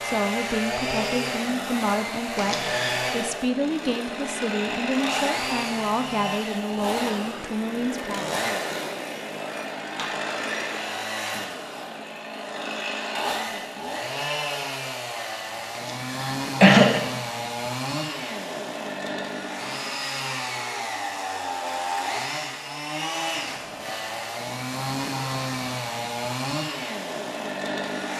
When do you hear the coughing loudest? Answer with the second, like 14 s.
17 s.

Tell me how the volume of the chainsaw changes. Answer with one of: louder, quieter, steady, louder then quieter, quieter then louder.
steady.